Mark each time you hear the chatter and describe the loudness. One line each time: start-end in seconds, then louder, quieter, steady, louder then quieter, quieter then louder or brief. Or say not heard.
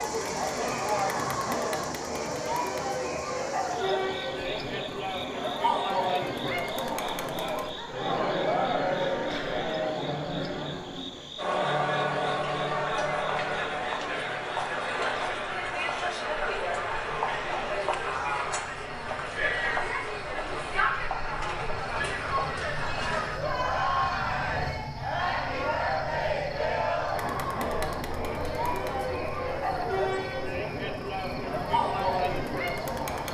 0.0-33.2 steady.